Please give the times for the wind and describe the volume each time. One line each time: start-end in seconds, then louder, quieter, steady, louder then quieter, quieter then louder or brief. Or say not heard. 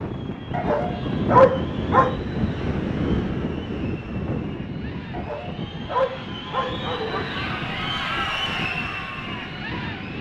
0.0-10.1 quieter.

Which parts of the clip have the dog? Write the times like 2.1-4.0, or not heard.
0.5-2.1, 5.1-7.3.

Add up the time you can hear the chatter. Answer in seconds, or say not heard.
10 s.